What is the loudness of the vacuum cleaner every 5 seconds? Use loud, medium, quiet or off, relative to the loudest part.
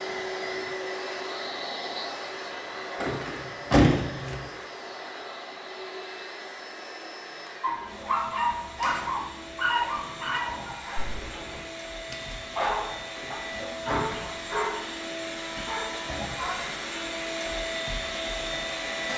loud, medium, medium, loud.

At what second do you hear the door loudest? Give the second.
4 s.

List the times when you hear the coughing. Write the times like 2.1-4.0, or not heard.
not heard.